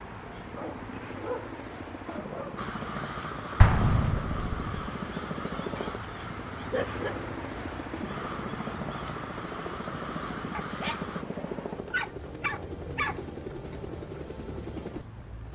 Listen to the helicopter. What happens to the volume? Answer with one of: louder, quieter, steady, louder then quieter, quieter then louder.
steady.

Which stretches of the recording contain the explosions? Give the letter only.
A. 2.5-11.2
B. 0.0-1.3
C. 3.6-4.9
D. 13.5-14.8
C.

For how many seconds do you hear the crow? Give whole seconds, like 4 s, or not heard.
9 s.